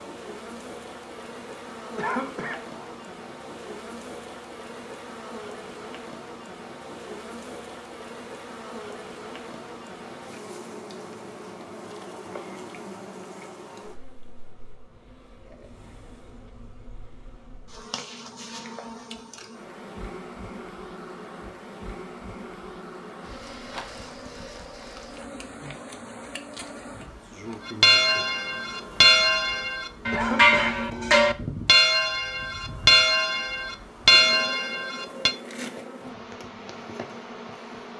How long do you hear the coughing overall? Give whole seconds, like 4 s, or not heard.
2 s.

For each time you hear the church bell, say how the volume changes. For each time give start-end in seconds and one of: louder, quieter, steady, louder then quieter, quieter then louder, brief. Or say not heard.
27.6-35.4 steady.